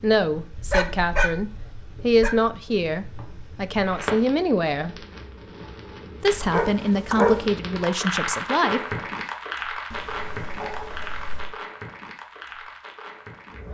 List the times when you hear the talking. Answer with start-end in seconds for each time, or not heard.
0.0-5.0, 6.2-8.9.